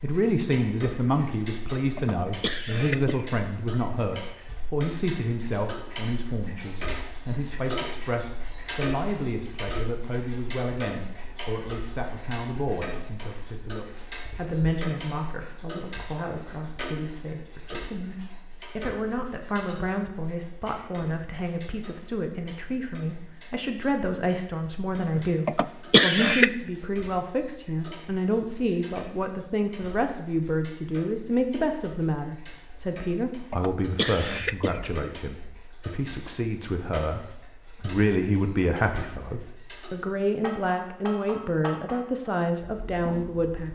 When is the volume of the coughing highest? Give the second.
26 s.